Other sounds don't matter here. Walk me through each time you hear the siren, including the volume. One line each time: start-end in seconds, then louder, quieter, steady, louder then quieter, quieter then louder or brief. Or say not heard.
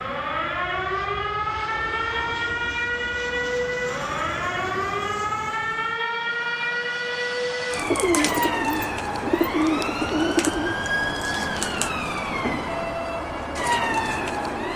0.0-14.7 steady.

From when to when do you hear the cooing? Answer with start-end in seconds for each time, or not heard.
7.8-10.8.